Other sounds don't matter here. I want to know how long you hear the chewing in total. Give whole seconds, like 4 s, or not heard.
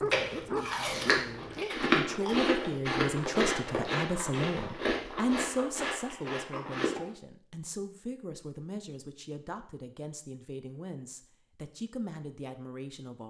7 s.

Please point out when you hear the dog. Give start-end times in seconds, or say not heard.
0.0-1.8.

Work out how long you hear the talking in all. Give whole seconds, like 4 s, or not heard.
13 s.